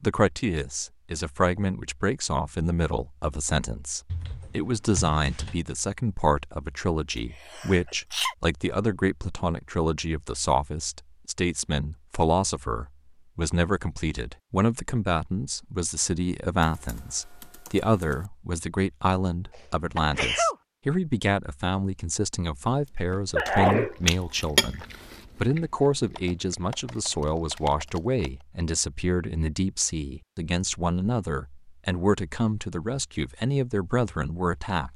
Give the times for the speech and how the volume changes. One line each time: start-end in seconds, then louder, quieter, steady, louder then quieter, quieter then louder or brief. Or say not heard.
0.0-34.9 steady.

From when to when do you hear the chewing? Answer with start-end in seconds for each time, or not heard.
22.6-28.2.